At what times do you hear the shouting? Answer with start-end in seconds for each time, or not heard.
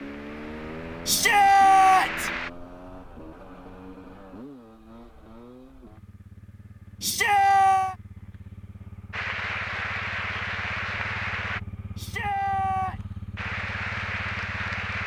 1.1-2.3, 7.0-8.0, 11.9-12.9.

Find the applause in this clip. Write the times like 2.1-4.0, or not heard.
0.0-2.5, 9.1-11.6, 13.3-15.0.